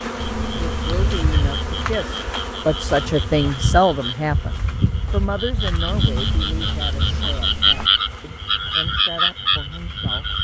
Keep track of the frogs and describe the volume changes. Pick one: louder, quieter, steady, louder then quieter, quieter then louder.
louder.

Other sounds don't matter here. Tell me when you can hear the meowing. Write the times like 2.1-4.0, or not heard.
0.2-1.9, 5.8-7.9.